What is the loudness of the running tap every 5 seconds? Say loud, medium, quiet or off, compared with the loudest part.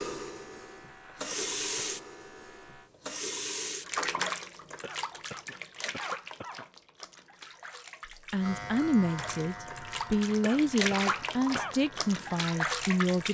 loud, medium, loud.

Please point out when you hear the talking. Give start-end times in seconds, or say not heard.
8.3-13.3.